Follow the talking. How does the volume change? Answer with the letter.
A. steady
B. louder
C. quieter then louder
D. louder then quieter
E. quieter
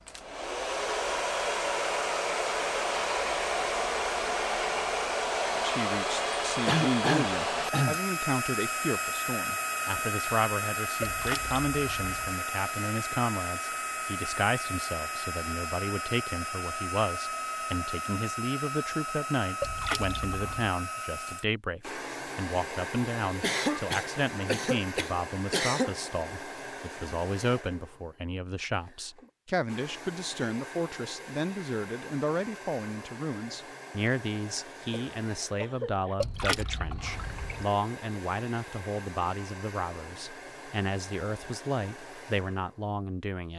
A.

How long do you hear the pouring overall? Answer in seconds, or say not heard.
4 s.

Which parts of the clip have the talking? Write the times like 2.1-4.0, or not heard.
5.5-43.5.